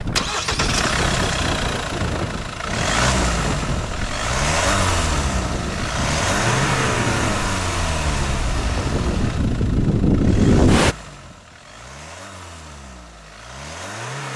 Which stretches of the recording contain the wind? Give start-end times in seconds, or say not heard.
0.0-10.9.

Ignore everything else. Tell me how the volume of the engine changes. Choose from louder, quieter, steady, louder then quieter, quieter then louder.
quieter.